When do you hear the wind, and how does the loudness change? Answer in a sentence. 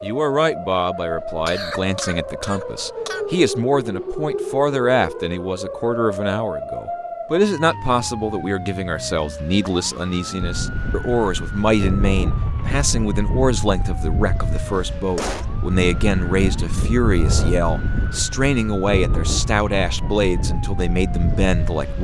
You can hear the wind from 10.4 to 21.9 s, at a steady volume.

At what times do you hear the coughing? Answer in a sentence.
The coughing can be heard from 1.4 to 3.2 s and from 14.8 to 15.4 s.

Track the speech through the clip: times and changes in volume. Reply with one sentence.
You can hear the speech from 0.0 to 21.9 s, at a steady volume.